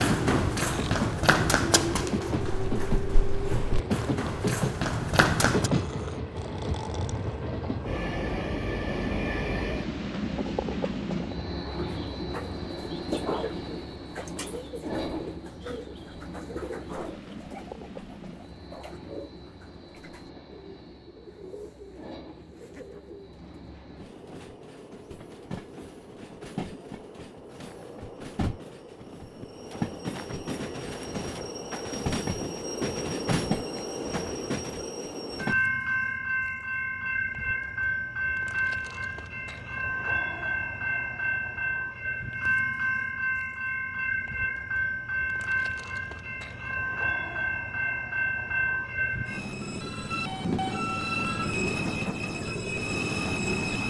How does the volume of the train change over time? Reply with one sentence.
The volume of the train goes down, then up.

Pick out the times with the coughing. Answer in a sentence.
You can't hear the coughing here.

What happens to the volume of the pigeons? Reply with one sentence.
The loudness of the pigeons goes down.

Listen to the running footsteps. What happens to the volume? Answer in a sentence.
The volume of the running footsteps goes down, then up.